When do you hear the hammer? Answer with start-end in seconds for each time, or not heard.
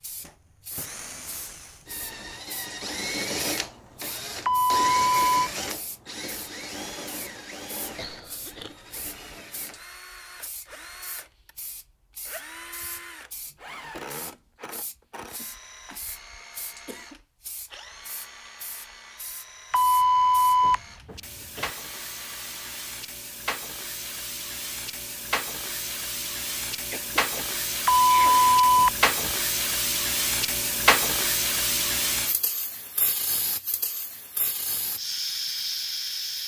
not heard.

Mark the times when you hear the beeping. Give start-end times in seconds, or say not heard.
4.5-5.5, 19.7-21.7, 27.9-29.3.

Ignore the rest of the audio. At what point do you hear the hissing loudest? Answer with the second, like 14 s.
31 s.